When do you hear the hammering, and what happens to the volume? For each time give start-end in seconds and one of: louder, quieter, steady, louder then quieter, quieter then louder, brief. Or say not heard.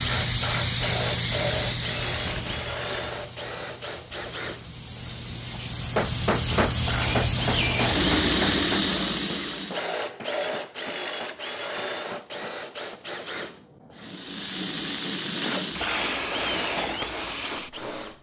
5.5-13.0 quieter.